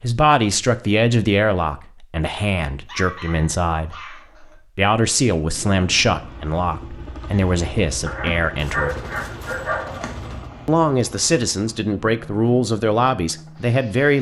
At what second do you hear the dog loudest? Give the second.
9 s.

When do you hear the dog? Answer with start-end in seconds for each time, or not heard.
2.9-4.5, 8.1-10.1.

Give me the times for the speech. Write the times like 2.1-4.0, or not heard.
0.0-9.0, 10.7-14.1.